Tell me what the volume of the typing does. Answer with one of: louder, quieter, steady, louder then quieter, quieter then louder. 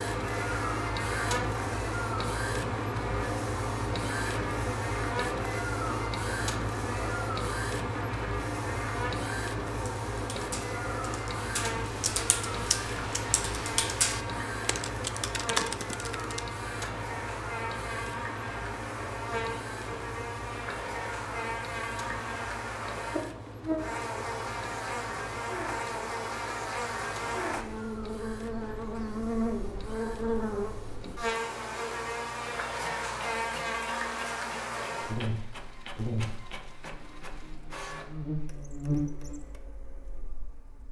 louder.